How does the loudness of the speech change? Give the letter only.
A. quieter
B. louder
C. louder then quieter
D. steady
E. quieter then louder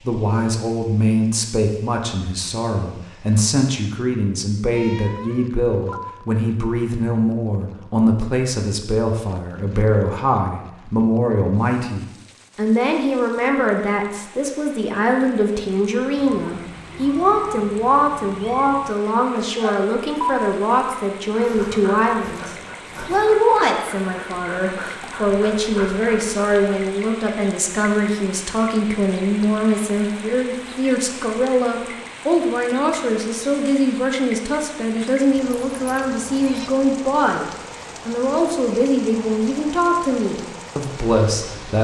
D.